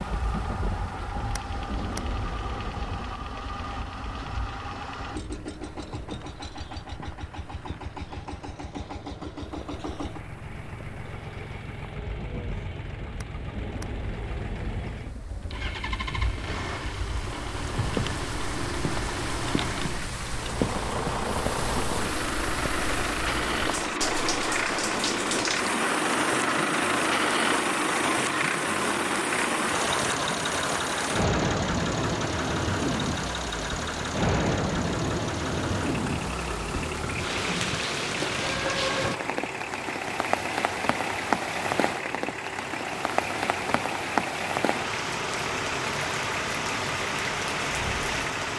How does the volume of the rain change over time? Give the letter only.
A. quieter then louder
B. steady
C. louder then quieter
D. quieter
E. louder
E.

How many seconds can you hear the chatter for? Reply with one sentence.
You can't hear the chatter here.